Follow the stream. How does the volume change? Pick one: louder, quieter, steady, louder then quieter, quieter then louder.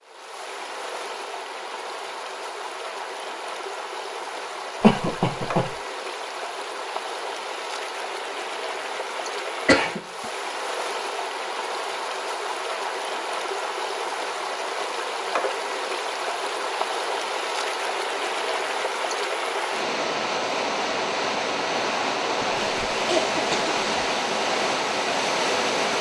louder.